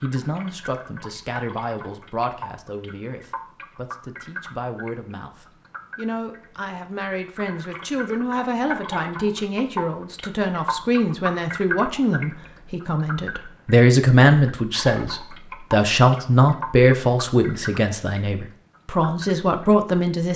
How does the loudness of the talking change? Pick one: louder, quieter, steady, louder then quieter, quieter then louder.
louder.